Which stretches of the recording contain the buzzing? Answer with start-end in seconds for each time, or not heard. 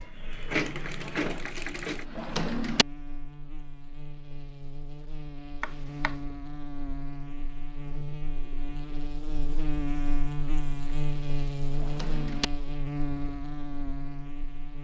0.0-14.7.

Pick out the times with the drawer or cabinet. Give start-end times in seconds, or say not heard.
2.1-2.9, 5.6-6.2, 11.8-12.5.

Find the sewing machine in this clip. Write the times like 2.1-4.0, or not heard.
0.0-2.0.